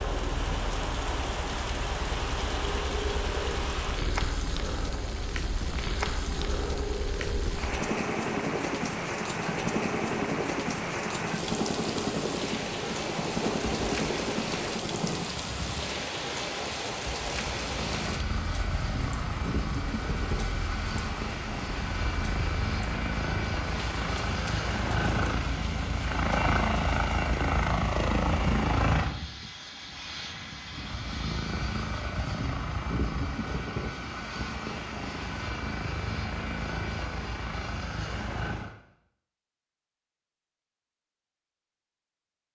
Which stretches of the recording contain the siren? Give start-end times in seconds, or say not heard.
not heard.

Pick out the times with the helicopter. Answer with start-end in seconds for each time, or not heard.
0.0-38.8.